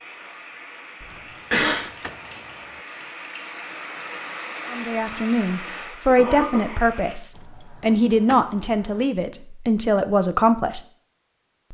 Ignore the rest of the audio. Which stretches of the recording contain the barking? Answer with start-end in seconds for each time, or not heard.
not heard.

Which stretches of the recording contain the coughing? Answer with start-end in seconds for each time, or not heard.
1.0-1.9, 6.0-6.8.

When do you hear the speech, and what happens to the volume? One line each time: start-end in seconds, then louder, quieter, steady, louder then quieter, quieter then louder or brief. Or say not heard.
4.7-10.8 steady.